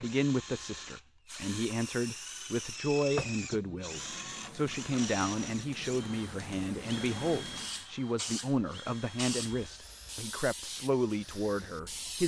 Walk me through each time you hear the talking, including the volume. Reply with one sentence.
The talking can be heard from 0.0 to 12.2 s, at a steady volume.